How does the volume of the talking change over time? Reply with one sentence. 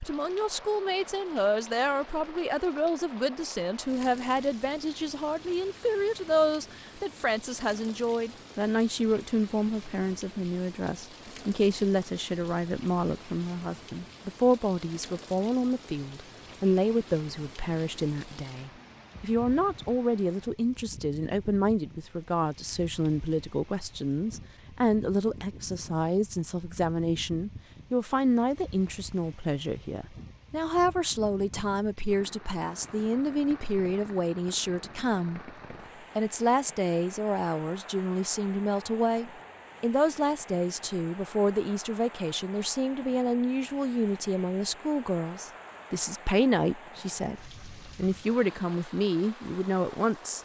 The loudness of the talking stays about the same.